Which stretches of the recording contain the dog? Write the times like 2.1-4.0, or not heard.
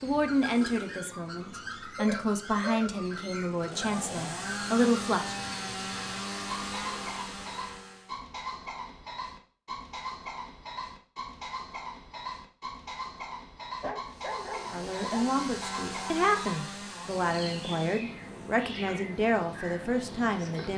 1.9-2.9, 13.8-15.3.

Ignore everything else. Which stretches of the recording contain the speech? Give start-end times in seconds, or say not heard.
0.0-5.3, 14.7-20.7.